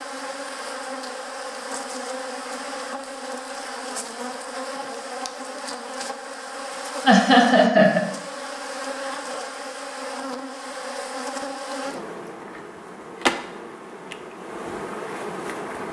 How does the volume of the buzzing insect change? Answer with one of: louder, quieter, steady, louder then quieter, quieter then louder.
steady.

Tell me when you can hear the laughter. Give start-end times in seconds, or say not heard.
7.0-8.0.